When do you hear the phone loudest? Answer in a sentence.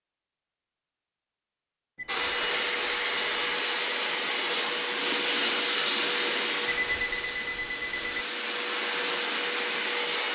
The loudest moment of the phone is at 7 seconds.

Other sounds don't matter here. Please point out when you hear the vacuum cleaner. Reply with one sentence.
You can hear the vacuum cleaner from 2.0 to 10.3 s.